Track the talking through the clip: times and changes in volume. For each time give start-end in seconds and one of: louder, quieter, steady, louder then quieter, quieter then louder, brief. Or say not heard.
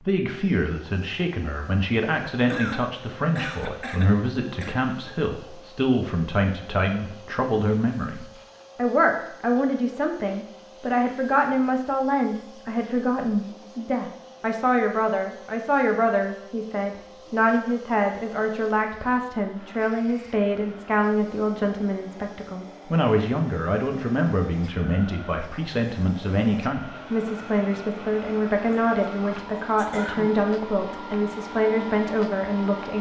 0.0-32.9 steady.